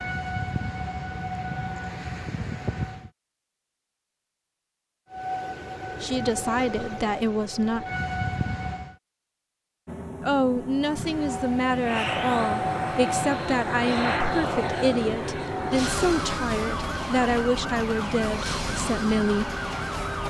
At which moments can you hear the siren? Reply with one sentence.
The siren can be heard from 0.0 to 3.1 s, from 5.1 to 8.9 s and from 10.9 to 20.2 s.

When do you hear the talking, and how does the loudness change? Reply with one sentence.
You can hear the talking briefly from 6.0 to 7.8 s; and from 10.2 to 19.5 s, at a steady volume.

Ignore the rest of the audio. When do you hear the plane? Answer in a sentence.
The plane can be heard from 9.8 to 20.2 s.